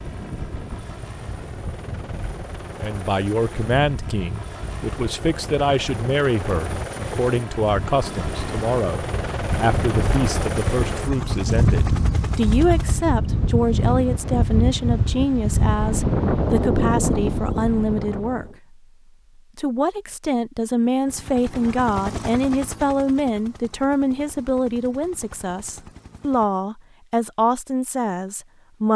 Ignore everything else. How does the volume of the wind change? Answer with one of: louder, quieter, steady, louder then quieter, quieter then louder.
louder.